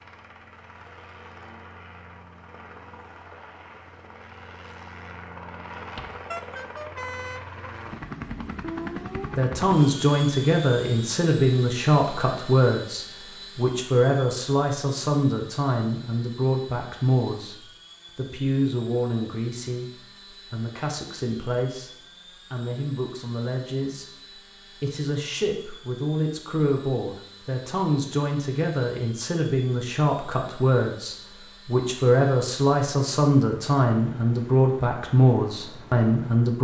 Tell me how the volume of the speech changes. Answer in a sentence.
The volume of the speech goes down, then up.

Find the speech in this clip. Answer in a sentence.
The speech can be heard from 9.3 to 36.5 s.